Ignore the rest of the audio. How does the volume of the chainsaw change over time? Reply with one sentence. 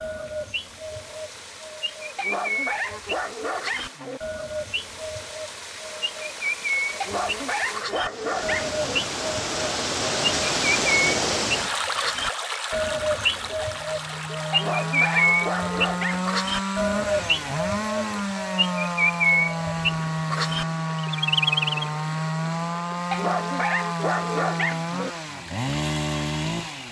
The volume of the chainsaw stays about the same.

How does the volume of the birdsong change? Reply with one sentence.
The volume of the birdsong goes up.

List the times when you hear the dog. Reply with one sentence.
The dog can be heard from 2.1 to 4.2 s, from 7.0 to 9.0 s, from 14.5 to 16.2 s and from 23.1 to 25.1 s.